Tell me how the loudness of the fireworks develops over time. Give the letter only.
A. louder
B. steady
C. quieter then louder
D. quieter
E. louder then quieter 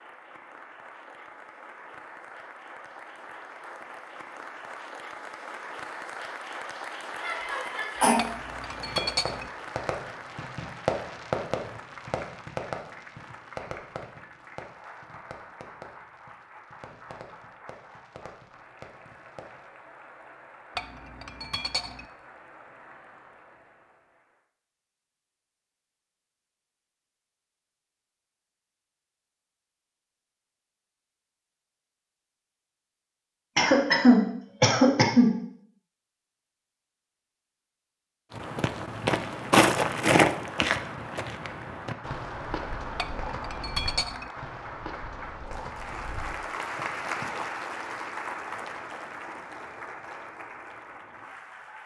D.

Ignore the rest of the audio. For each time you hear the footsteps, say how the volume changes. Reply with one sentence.
You can hear the footsteps from 38.3 to 47.5 s, getting quieter.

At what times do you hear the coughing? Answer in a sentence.
You can hear the coughing from 7.2 to 8.2 s and from 33.5 to 35.3 s.